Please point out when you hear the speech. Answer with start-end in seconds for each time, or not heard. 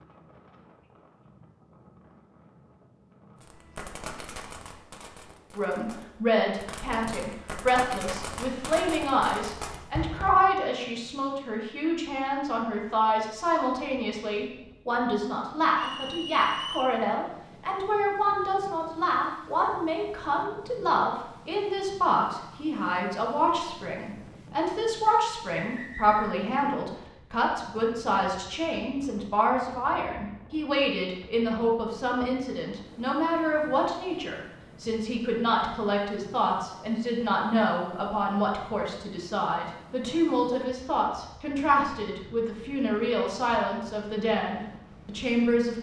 5.5-45.7.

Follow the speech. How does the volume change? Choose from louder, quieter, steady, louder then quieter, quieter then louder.
steady.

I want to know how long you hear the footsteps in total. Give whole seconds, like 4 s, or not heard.
not heard.